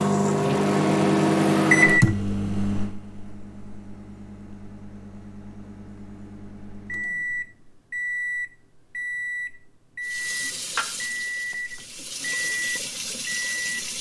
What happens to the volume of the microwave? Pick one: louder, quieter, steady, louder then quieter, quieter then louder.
quieter then louder.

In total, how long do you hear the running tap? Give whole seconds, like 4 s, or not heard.
4 s.